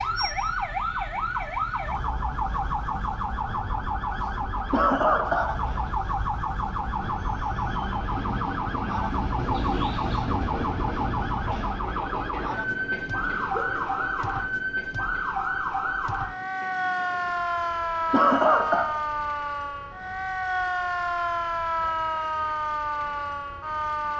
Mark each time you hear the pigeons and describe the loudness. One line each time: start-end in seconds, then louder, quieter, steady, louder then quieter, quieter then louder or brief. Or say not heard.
not heard.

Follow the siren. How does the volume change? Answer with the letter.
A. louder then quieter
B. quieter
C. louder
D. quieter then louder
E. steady
E.